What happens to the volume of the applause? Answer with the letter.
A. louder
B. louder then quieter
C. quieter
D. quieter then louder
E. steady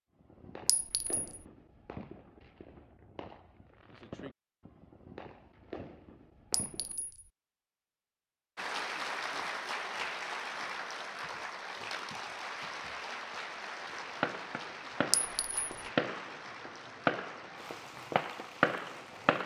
C.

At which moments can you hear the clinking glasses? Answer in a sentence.
You can hear the clinking glasses from 0.7 to 1.4 s, from 6.5 to 7.2 s and from 15.1 to 15.7 s.